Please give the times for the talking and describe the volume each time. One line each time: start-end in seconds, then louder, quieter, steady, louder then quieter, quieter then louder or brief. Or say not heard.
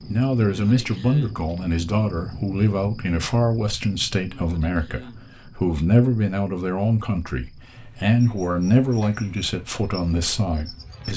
0.0-11.1 steady.